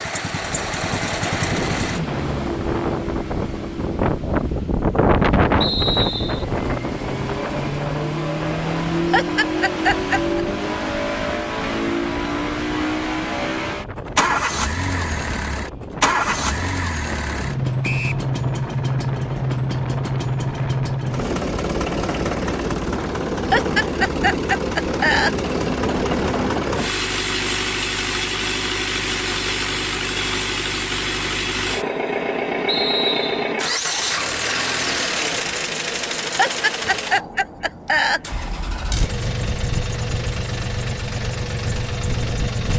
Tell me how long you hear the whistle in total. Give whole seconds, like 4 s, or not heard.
2 s.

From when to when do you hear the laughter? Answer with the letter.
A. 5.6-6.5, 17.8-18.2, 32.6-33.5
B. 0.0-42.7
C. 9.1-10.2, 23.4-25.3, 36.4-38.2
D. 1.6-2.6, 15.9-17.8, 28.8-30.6
C.